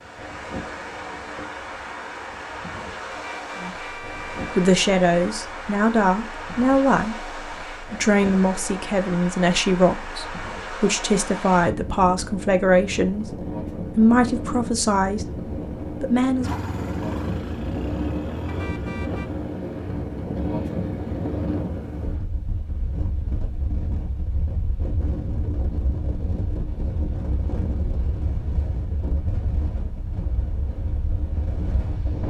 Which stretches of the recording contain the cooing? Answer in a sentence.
You can't hear the cooing here.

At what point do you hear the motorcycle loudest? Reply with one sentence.
The loudest moment of the motorcycle is at 18 seconds.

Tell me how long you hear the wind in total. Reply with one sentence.
You can hear the wind for 32 seconds altogether.